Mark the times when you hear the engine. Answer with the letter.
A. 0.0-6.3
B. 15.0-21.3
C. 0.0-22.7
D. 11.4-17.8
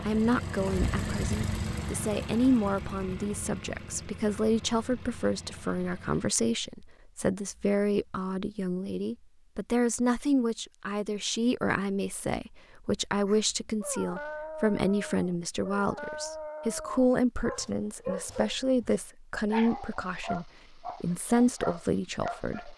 A.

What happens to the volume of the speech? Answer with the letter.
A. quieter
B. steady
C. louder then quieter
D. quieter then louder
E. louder
B.